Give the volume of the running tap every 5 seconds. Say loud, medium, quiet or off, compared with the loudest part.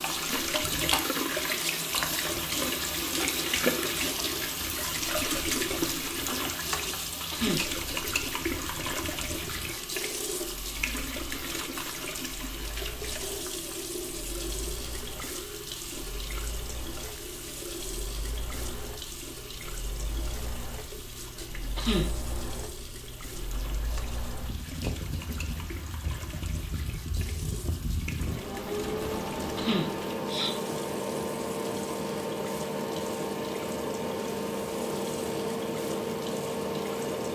loud, loud, medium, medium, quiet, quiet, quiet, quiet.